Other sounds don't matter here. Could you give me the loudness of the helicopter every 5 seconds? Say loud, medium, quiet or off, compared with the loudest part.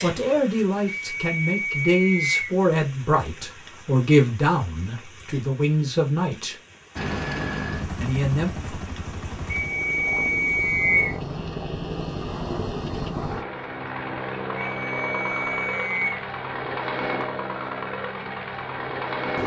off, loud, loud, loud.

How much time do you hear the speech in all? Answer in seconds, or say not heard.
7 s.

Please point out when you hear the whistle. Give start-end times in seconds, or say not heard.
0.9-2.5, 9.4-11.2, 14.6-16.2.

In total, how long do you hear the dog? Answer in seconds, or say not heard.
not heard.